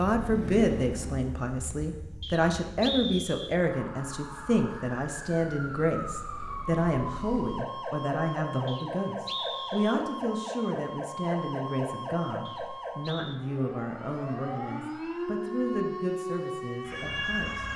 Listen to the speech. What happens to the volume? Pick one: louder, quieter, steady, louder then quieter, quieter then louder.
quieter.